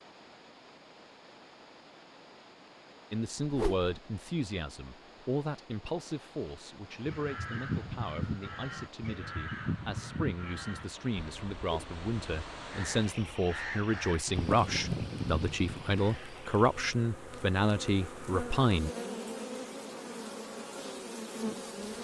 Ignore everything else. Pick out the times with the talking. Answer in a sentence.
You can hear the talking from 3.1 to 18.9 s.